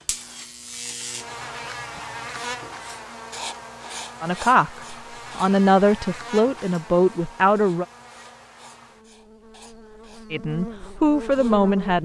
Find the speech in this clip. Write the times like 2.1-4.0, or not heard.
4.2-7.8, 10.3-11.9.